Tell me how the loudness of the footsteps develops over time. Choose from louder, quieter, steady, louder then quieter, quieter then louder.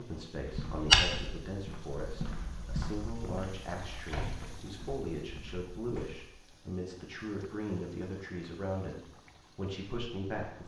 quieter.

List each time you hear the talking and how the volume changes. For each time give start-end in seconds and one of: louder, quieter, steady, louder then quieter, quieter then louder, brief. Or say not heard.
0.0-10.6 steady.